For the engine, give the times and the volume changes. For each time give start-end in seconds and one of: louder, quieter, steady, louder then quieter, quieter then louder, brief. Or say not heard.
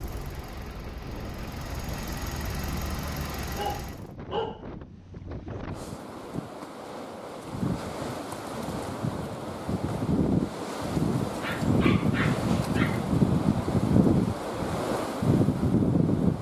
0.0-4.2 louder.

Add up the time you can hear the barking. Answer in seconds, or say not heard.
3 s.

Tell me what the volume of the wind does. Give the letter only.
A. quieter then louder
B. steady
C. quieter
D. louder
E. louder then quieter
D.